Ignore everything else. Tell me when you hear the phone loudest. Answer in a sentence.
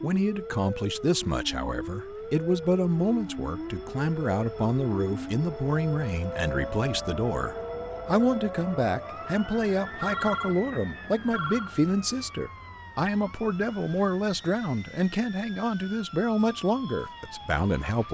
The loudest moment of the phone is at 10 seconds.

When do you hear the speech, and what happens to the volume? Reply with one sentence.
You can hear the speech from 0.0 to 18.0 s, at a steady volume.